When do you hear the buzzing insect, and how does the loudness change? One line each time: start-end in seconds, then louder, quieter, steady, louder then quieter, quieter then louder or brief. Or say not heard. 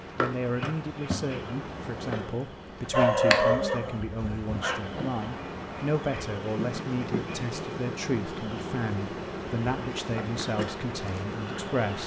0.0-12.0 steady.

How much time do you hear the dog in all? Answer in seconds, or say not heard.
2 s.